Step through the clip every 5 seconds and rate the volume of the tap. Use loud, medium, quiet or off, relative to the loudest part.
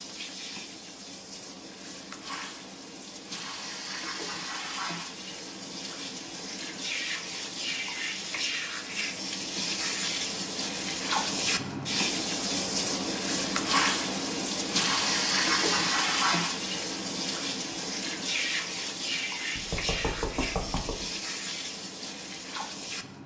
medium, medium, loud, loud, medium.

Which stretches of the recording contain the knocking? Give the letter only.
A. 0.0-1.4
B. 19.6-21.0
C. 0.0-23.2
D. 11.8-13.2
B.